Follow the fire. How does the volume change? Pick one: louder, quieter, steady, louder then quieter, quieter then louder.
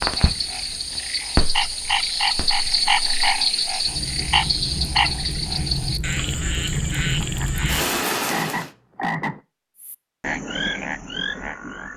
quieter then louder.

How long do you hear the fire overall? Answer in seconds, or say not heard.
9 s.